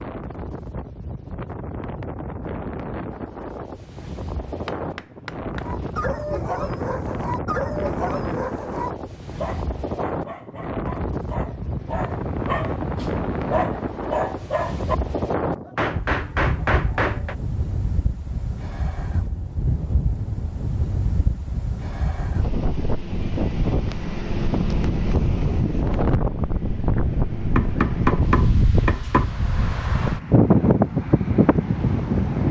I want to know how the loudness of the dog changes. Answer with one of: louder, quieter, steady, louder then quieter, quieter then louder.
quieter then louder.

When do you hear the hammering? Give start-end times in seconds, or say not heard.
4.5-6.0, 15.8-17.4, 27.6-29.2.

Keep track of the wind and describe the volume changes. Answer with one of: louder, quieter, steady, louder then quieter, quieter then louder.
louder.